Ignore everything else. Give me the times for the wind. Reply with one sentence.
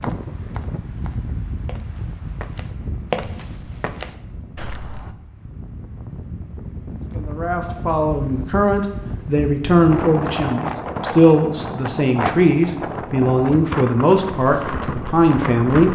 The wind can be heard from 0.0 to 15.8 s.